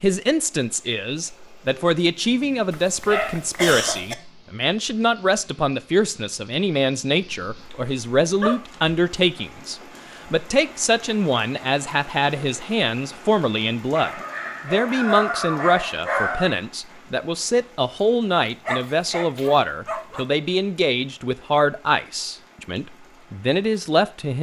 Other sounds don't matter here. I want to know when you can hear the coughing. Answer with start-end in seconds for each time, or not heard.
2.7-4.2.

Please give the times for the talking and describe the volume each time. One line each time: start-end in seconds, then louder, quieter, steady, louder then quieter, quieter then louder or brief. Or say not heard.
0.0-24.3 steady.